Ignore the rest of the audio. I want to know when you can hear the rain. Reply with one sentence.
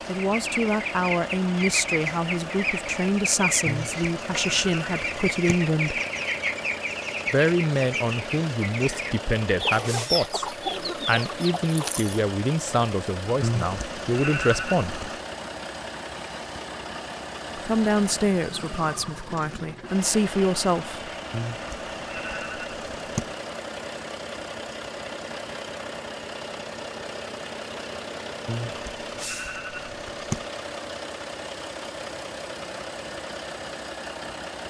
You can't hear the rain here.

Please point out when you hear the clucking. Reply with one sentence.
The clucking can be heard from 0.1 to 12.2 s.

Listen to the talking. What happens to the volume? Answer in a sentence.
The volume of the talking stays about the same.